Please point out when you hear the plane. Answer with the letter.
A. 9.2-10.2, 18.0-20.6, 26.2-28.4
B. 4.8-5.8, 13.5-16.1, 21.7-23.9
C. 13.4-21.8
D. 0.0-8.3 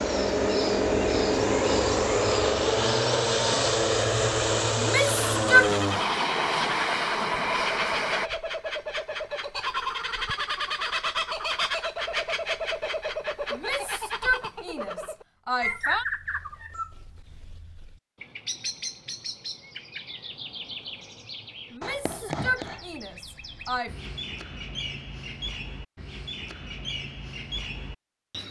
D.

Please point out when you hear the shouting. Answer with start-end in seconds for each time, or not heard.
4.8-5.8, 13.5-16.1, 21.7-23.9.